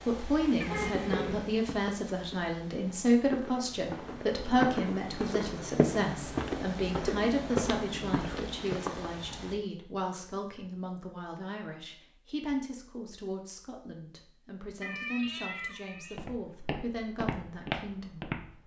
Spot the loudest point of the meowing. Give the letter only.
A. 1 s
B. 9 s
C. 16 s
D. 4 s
A.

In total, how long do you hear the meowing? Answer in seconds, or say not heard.
3 s.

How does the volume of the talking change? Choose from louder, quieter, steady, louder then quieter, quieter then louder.
quieter.